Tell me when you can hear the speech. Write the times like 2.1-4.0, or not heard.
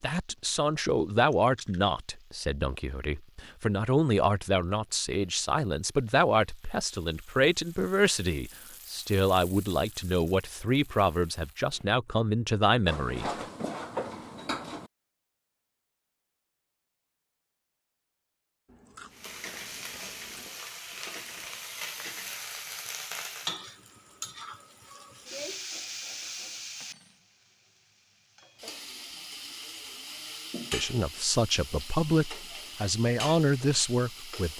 0.0-13.3, 30.7-34.5.